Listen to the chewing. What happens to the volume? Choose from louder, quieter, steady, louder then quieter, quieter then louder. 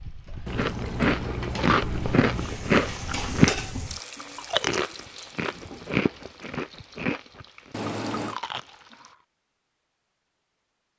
quieter.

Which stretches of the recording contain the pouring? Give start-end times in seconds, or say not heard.
0.5-2.5, 7.7-8.4.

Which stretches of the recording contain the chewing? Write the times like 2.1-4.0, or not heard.
0.5-3.5, 4.2-9.2.